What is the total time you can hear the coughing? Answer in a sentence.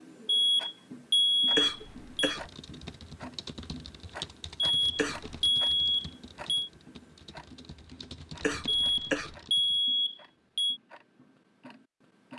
You can hear the coughing for 2 seconds altogether.